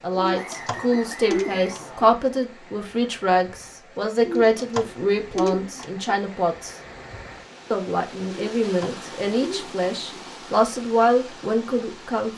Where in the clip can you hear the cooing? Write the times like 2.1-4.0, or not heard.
0.1-2.1, 4.2-6.2, 8.2-10.3.